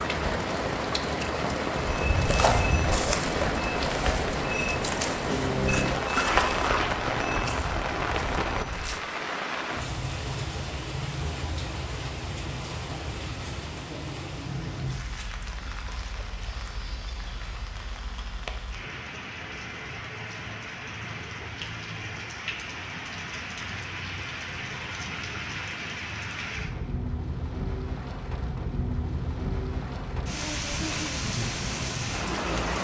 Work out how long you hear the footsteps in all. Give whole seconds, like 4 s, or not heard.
7 s.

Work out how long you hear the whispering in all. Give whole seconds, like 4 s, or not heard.
not heard.